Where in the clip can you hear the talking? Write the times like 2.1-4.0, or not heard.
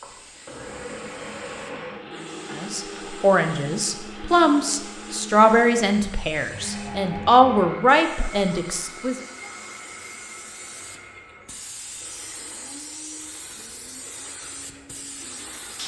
2.5-9.2.